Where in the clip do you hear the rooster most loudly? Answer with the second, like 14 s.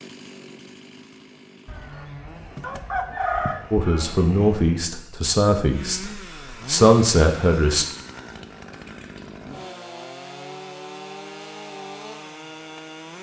3 s.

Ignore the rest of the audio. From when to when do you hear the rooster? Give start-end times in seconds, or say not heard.
1.6-4.2.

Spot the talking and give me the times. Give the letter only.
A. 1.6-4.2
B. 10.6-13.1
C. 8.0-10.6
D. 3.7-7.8
D.